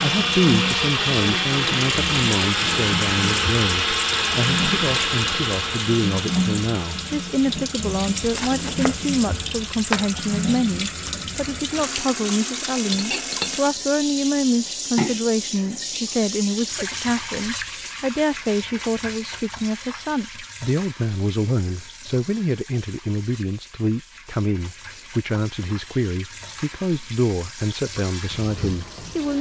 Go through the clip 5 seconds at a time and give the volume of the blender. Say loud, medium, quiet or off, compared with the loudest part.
loud, medium, quiet, off, off, off.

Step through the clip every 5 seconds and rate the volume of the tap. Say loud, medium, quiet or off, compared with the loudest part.
loud, loud, loud, loud, quiet, medium.